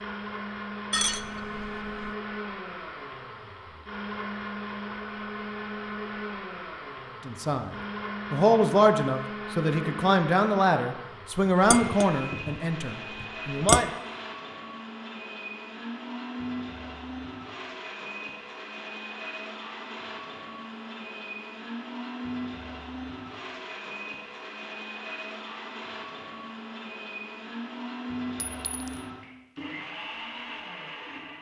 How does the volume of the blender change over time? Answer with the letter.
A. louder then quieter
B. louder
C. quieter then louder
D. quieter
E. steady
E.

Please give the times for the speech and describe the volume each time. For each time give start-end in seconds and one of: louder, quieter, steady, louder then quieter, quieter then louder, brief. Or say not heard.
7.2-13.9 quieter.